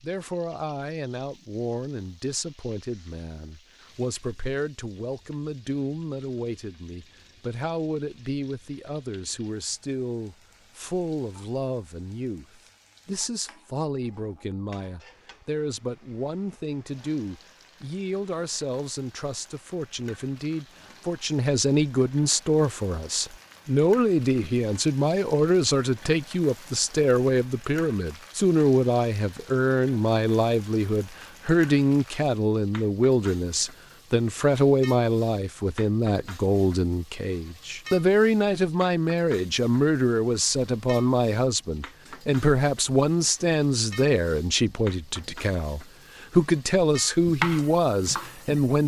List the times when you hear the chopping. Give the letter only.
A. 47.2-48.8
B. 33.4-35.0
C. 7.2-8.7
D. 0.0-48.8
A.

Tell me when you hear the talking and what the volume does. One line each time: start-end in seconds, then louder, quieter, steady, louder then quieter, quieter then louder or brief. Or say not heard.
0.0-48.8 louder.